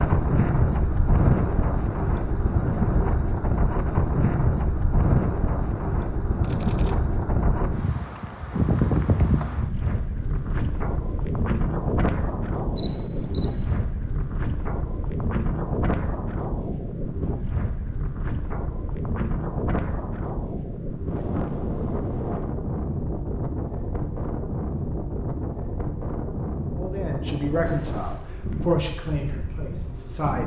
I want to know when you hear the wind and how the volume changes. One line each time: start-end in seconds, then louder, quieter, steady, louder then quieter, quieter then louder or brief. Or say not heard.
0.0-30.4 quieter.